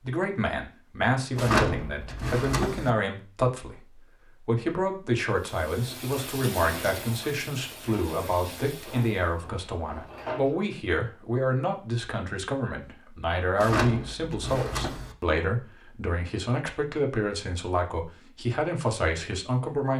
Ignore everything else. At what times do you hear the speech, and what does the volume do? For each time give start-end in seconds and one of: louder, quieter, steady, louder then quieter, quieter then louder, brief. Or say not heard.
0.0-19.9 steady.